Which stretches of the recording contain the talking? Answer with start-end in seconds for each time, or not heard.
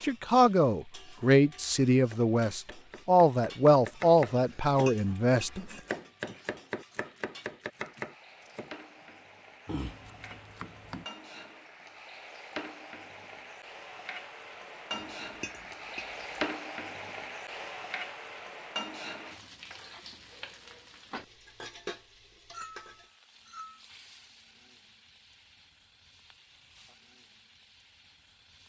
0.0-5.6.